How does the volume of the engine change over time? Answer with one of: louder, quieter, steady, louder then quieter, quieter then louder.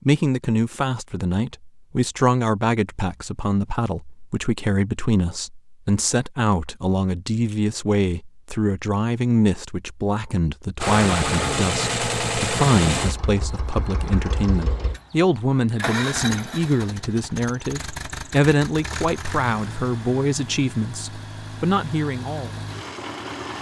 quieter.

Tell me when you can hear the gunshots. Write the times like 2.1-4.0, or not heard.
not heard.